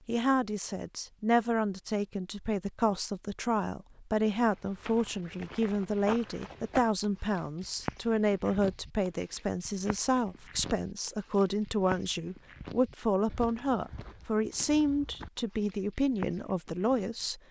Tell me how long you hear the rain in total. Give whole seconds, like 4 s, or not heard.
not heard.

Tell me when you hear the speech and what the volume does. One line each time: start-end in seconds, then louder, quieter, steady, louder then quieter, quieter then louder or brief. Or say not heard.
0.1-17.4 steady.